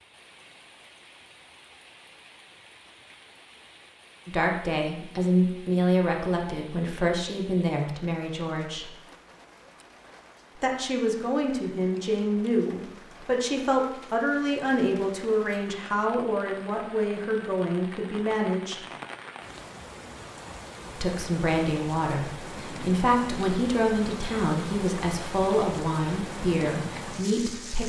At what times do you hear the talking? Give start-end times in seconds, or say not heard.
4.2-8.9, 10.6-18.9, 20.9-27.8.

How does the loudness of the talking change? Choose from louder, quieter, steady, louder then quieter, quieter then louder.
steady.